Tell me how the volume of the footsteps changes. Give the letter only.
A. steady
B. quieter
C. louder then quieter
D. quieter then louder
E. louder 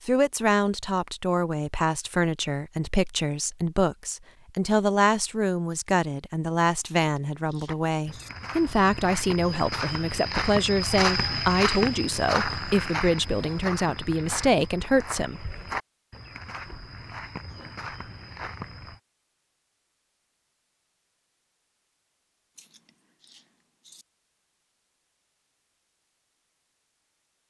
C.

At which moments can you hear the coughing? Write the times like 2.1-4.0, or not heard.
not heard.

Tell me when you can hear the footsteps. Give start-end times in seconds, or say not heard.
7.7-19.0.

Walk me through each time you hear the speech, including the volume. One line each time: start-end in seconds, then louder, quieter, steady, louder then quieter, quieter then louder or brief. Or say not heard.
0.1-15.4 steady.